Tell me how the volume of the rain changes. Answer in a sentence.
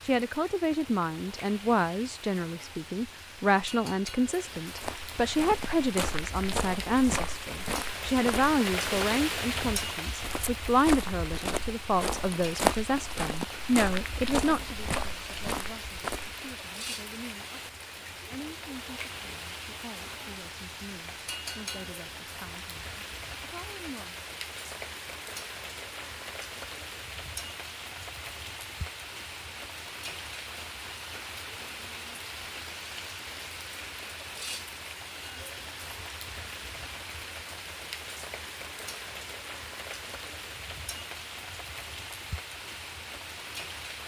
The loudness of the rain stays about the same.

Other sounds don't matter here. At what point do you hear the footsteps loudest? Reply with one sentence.
The volume of the footsteps peaks at 13 seconds.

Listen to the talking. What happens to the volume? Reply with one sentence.
The loudness of the talking goes down.